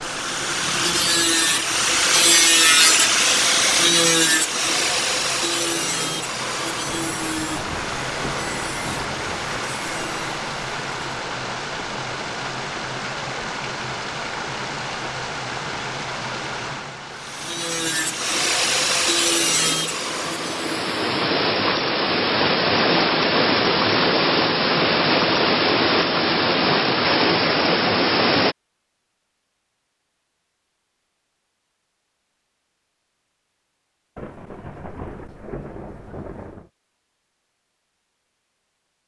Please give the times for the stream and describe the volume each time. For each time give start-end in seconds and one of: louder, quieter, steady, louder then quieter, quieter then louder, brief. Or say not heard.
0.0-28.6 louder.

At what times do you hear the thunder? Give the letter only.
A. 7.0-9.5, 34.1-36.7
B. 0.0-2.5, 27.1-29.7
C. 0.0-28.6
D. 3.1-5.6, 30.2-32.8
A.